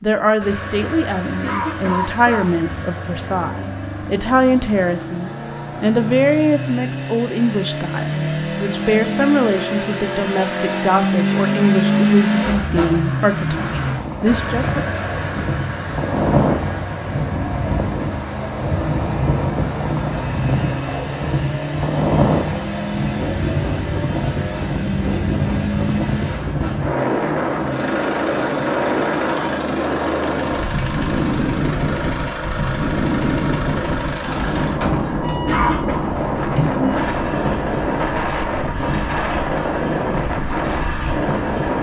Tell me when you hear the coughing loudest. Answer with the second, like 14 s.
36 s.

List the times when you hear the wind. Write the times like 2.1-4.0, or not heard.
13.8-41.7.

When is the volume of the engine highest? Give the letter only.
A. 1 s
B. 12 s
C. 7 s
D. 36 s
B.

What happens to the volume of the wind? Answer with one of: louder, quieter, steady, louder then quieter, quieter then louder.
steady.